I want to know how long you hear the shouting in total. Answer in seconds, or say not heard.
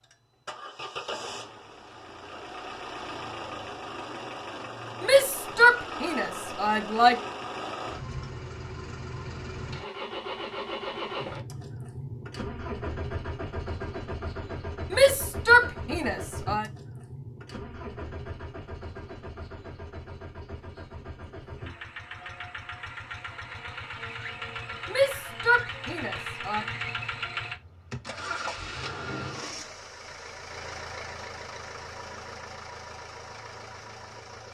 6 s.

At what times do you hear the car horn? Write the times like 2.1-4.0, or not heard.
not heard.